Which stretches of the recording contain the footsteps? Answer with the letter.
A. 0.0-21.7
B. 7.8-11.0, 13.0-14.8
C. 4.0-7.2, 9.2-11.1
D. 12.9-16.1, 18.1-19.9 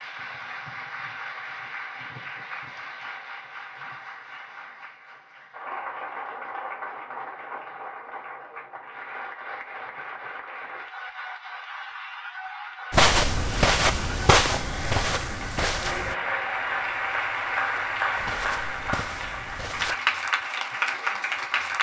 D.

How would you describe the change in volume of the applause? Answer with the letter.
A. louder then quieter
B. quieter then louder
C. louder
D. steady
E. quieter
C.